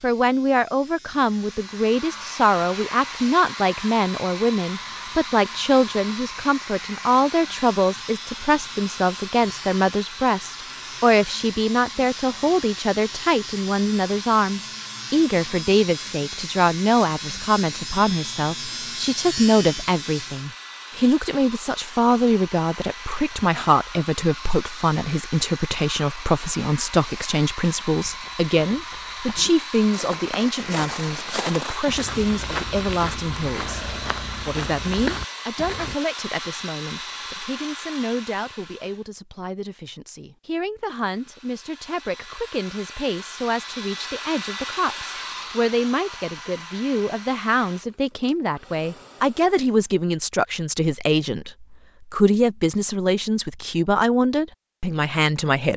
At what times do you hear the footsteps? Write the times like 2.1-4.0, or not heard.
28.0-36.0.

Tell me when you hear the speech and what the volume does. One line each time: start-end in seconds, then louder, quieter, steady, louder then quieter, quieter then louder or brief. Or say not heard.
0.0-55.7 quieter then louder.